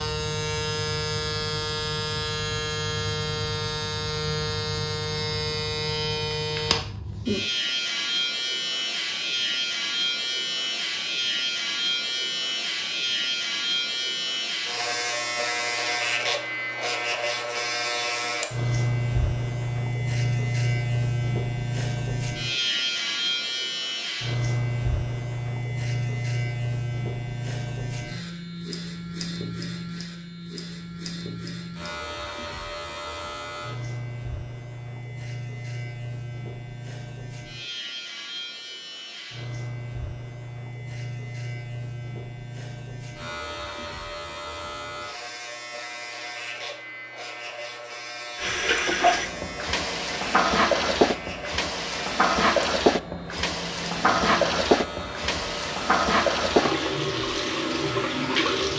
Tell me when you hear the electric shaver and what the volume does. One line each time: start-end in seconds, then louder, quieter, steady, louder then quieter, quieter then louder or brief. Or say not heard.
0.0-58.7 quieter.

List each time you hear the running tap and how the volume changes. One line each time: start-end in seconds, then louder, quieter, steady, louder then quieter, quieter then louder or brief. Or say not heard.
48.4-58.7 steady.